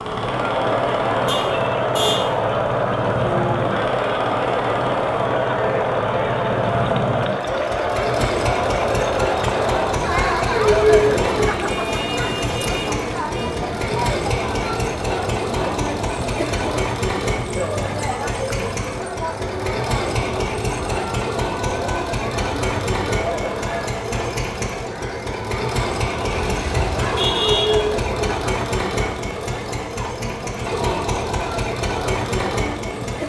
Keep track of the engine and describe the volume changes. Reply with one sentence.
The volume of the engine stays about the same.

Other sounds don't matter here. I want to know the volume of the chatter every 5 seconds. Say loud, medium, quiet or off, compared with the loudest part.
loud, loud, loud, medium, medium, medium, medium.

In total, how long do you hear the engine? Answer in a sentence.
You can hear the engine for 33 seconds altogether.